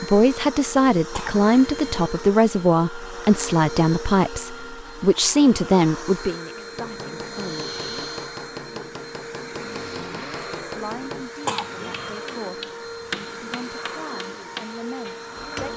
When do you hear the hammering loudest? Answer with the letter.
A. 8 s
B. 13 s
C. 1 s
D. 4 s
B.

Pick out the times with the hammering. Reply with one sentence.
The hammering can be heard from 6.8 to 15.7 s.